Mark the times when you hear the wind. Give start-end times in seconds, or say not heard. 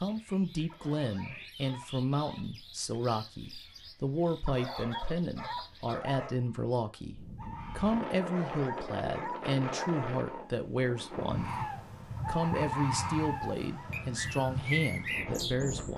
7.0-15.9.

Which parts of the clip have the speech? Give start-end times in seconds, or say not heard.
0.0-11.7, 12.2-15.9.